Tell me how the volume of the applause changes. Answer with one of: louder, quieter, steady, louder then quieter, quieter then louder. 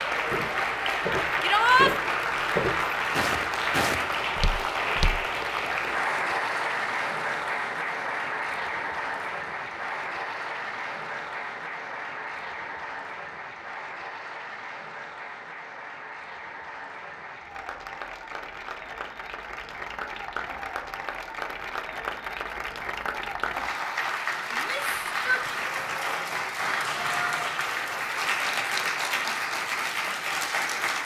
quieter then louder.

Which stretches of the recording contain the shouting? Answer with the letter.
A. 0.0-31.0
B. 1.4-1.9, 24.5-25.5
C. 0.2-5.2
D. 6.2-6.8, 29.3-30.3
B.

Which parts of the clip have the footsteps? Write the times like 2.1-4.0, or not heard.
0.2-5.2.